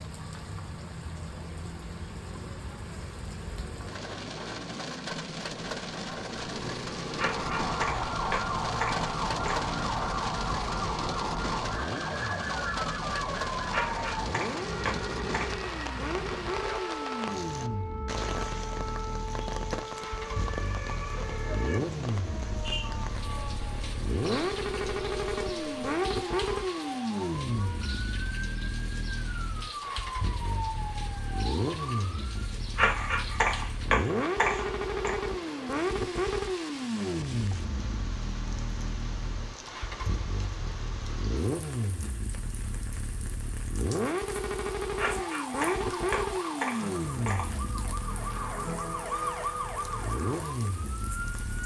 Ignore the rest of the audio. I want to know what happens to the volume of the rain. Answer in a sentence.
The volume of the rain goes down.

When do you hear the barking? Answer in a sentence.
The barking can be heard from 7.2 to 9.6 s, from 13.7 to 15.5 s, from 32.8 to 35.2 s and from 45.0 to 47.5 s.